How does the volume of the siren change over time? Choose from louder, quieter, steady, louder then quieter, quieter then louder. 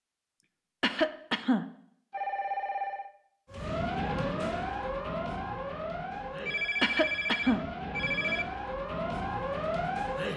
quieter then louder.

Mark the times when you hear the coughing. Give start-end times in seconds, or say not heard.
0.8-1.6, 6.8-7.7.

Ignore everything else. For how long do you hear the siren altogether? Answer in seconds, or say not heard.
7 s.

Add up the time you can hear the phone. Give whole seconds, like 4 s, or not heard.
3 s.